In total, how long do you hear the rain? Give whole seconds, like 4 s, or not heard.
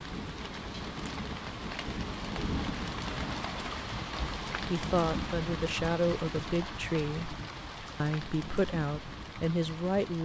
10 s.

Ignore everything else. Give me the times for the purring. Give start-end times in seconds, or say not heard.
not heard.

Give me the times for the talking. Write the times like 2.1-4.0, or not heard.
4.7-7.3, 8.0-10.2.